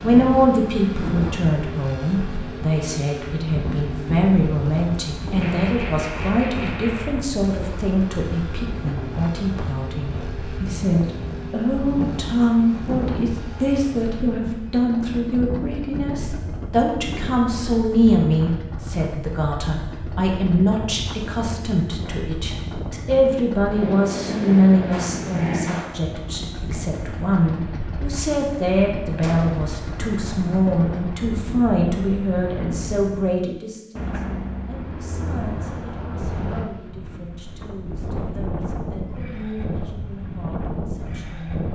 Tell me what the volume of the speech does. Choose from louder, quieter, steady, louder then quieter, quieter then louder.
quieter.